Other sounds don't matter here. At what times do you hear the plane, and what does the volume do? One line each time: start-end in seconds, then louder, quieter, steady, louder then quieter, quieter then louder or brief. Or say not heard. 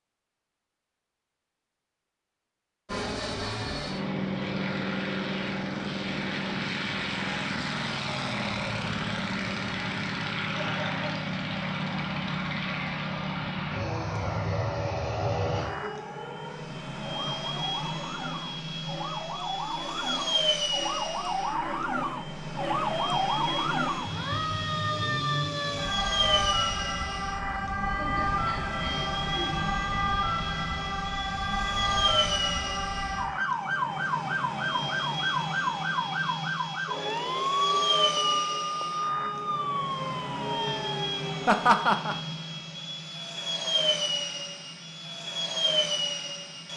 2.9-46.7 steady.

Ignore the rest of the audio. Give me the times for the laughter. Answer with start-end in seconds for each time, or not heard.
10.4-11.2, 27.9-29.6, 41.5-42.1.